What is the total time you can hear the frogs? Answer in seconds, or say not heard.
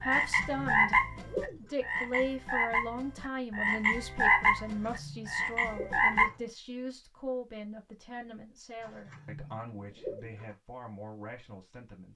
6 s.